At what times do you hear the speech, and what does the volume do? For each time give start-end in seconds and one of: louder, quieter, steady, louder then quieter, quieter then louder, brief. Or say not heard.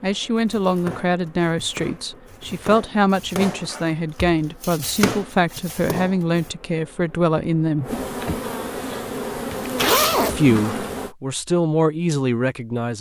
0.0-8.0 steady
10.2-12.9 brief.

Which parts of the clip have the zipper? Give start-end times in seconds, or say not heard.
9.5-10.5.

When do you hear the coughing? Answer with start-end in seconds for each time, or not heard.
not heard.